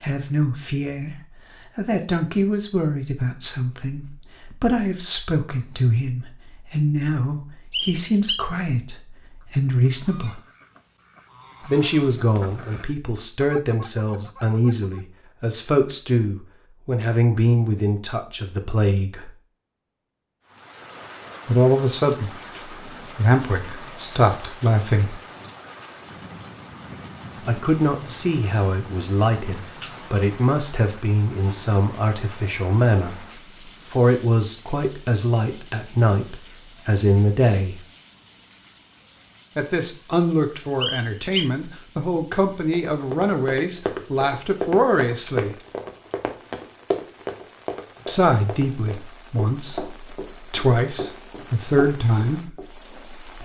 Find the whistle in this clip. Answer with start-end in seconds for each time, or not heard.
7.7-8.5, 40.8-41.5.